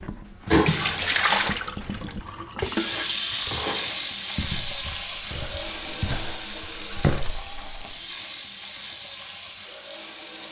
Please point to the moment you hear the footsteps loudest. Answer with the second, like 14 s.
7 s.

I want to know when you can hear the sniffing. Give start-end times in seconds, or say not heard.
0.5-0.9.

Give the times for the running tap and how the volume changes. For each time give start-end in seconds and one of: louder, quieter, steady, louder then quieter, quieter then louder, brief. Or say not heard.
0.0-10.4 quieter.